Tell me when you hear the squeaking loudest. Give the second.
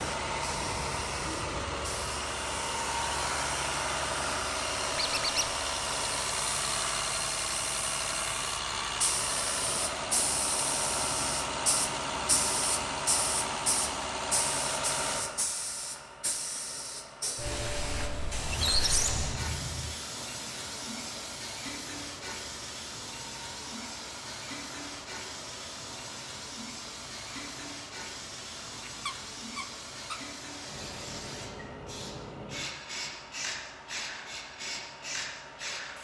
19 s.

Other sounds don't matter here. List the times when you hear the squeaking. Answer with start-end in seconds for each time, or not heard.
5.0-5.5, 18.4-19.9, 28.9-30.2.